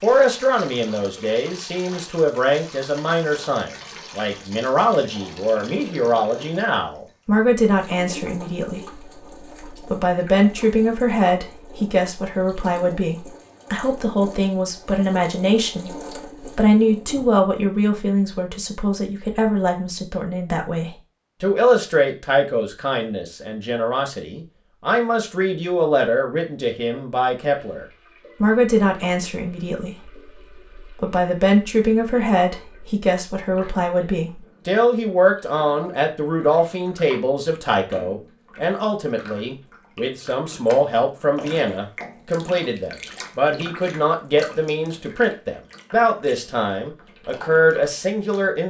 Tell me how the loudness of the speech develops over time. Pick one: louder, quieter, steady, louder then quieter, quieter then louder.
steady.